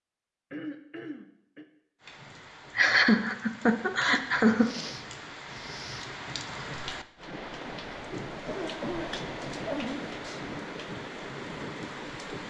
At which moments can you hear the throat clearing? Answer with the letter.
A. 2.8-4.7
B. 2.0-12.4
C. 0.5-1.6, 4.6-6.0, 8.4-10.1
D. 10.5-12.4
C.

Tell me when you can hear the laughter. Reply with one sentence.
The laughter can be heard from 2.8 to 4.7 s.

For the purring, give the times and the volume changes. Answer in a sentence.
The purring can't be heard in this clip.